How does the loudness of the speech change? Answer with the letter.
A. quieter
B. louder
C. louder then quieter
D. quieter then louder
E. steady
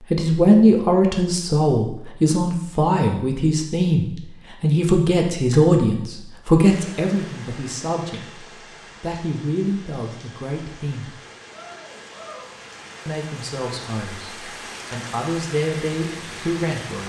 A.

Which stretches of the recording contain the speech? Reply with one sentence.
You can hear the speech from 0.0 to 11.1 s and from 13.1 to 17.0 s.